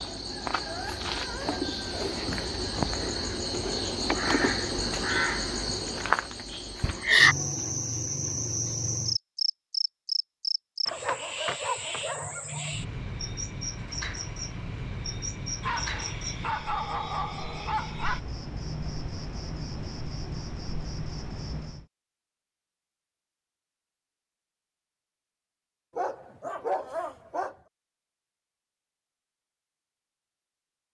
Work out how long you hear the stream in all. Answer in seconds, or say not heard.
not heard.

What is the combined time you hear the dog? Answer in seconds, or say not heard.
8 s.